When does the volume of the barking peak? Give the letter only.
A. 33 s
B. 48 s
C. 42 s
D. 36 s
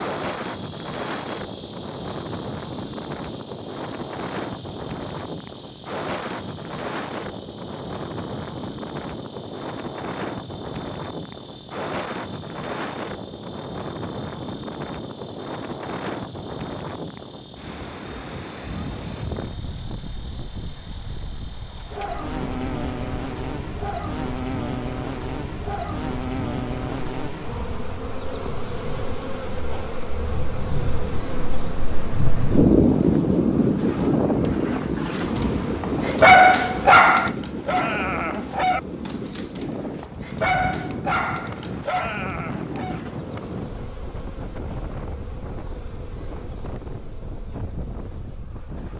D.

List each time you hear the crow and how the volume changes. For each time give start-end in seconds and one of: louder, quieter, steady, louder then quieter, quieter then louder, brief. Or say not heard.
not heard.